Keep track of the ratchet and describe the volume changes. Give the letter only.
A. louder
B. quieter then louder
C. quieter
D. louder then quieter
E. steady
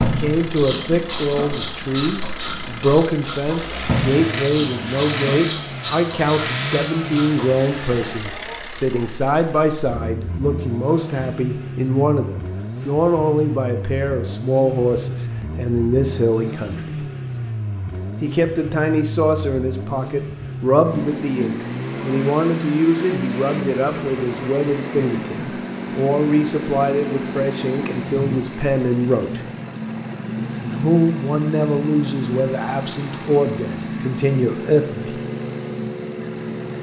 E.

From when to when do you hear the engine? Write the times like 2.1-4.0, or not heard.
0.0-36.7.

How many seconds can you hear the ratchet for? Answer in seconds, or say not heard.
8 s.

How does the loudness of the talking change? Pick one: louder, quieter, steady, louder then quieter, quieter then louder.
steady.